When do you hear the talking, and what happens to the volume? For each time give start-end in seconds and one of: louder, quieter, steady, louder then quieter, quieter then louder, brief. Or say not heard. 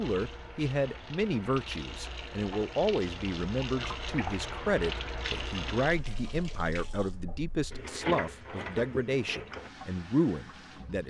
0.0-11.0 steady.